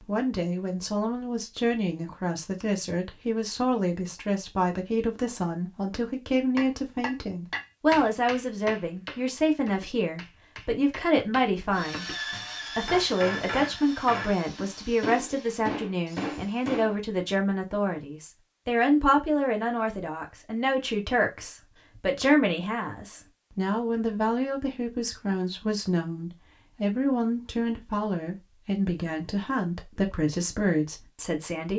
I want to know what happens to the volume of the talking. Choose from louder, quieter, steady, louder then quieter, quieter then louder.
steady.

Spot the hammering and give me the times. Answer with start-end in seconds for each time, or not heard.
6.5-16.9.